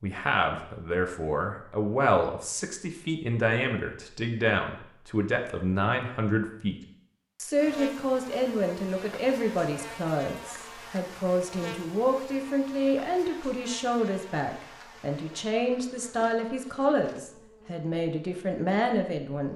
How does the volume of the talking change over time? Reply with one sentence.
The volume of the talking stays about the same.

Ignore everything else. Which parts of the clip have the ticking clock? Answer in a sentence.
You can't hear the ticking clock here.